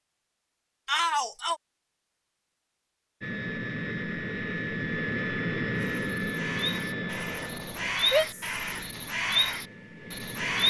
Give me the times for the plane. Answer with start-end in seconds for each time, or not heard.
3.2-10.6.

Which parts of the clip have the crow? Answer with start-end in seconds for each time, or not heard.
5.8-10.6.